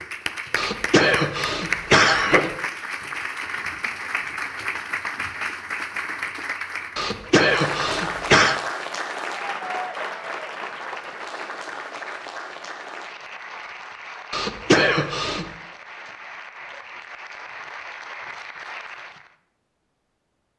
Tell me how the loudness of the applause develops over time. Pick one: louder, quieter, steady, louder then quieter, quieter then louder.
quieter.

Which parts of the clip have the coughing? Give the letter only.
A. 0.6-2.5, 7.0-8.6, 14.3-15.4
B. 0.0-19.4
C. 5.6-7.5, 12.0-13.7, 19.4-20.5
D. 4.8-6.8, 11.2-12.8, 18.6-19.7
A.